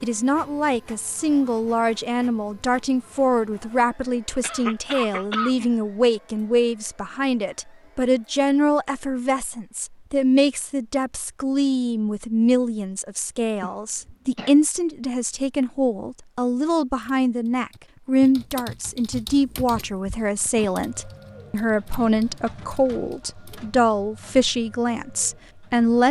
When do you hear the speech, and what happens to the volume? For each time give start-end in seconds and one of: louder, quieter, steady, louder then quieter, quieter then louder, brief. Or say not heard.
0.0-26.0 steady.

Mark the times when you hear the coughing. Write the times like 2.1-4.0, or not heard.
4.4-5.7, 13.6-14.6.